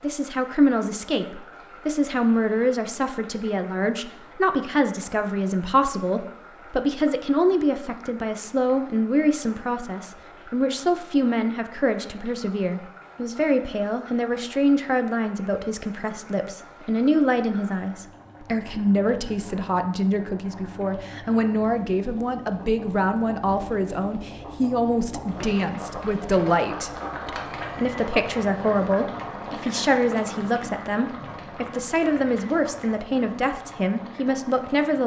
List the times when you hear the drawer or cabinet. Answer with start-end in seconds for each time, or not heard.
not heard.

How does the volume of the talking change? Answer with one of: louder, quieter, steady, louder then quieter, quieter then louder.
steady.